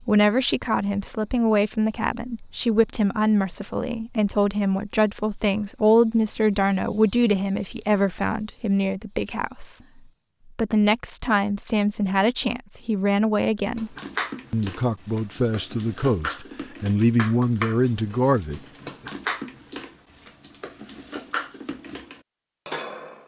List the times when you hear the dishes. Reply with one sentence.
The dishes can be heard from 13.8 to 23.2 s.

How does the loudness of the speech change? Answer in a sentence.
The loudness of the speech stays about the same.